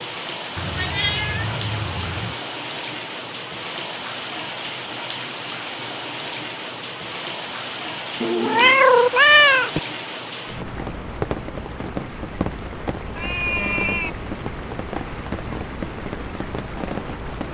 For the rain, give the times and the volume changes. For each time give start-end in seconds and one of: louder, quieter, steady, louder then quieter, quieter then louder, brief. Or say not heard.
0.0-17.4 steady.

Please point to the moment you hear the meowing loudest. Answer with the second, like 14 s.
9 s.